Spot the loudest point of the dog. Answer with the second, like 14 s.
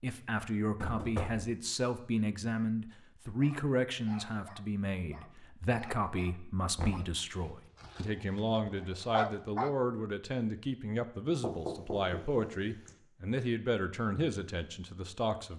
9 s.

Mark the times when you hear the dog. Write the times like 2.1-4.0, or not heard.
3.4-9.8.